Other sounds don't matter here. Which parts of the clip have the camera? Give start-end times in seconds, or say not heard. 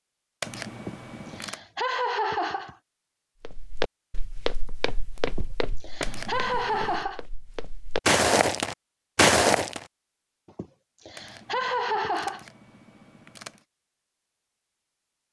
0.4-1.6, 6.0-7.0, 11.2-13.7.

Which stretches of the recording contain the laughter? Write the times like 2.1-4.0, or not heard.
0.8-2.8, 5.2-7.2, 10.4-12.4.